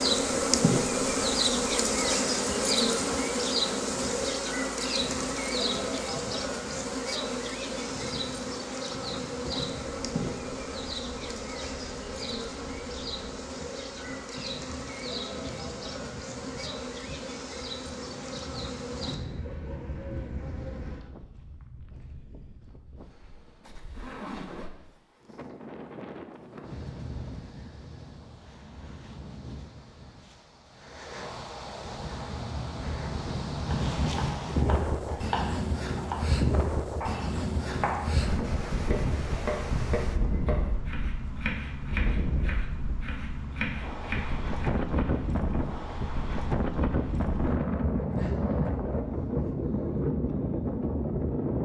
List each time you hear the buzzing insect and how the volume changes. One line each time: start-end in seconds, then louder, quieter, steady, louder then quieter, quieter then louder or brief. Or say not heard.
0.0-21.1 quieter.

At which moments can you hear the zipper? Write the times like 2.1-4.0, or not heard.
23.6-24.7.